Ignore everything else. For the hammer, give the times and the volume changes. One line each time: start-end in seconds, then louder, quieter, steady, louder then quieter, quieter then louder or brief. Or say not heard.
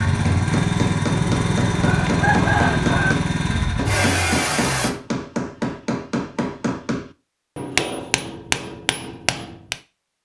0.2-9.8 steady.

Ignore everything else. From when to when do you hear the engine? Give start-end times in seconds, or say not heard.
0.0-4.9.